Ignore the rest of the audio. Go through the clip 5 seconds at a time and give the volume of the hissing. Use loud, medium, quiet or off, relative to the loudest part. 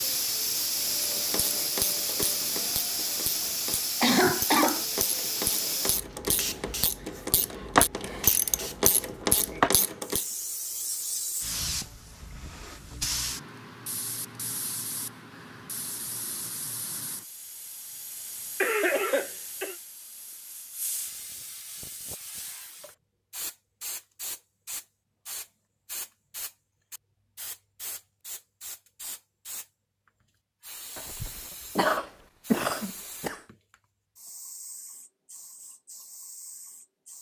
loud, loud, medium, quiet, quiet, quiet, quiet, quiet.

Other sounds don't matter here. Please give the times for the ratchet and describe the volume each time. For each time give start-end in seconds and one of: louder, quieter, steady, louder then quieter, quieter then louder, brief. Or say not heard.
0.9-10.2 louder.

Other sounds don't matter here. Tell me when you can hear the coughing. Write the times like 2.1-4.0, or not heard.
4.0-4.8, 18.6-19.8, 30.9-33.4.